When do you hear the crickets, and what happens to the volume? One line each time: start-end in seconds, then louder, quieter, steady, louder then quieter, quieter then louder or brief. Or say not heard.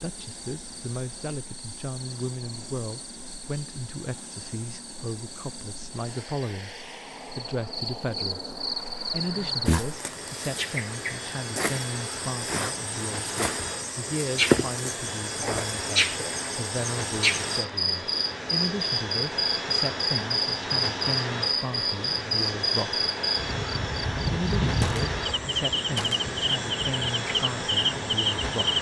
0.1-28.7 louder.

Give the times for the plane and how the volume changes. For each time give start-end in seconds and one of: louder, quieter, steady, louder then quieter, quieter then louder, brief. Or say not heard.
0.0-28.7 louder.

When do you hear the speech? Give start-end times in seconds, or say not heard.
0.0-6.8, 7.3-8.5, 9.1-23.1, 24.3-28.7.